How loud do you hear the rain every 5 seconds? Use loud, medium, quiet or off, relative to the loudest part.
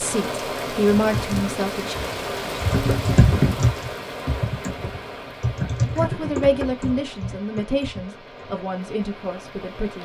loud, medium.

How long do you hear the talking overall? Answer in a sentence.
The talking can be heard for 6 seconds in total.